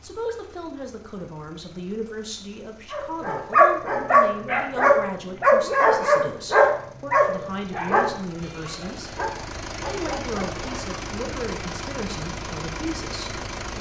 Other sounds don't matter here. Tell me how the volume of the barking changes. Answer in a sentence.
The loudness of the barking goes down.